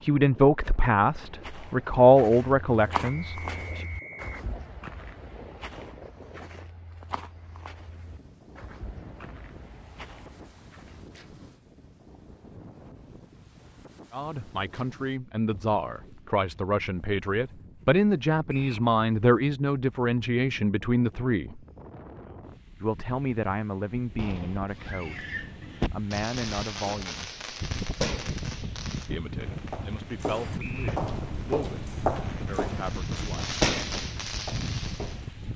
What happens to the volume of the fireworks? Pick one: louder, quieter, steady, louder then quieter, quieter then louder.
quieter then louder.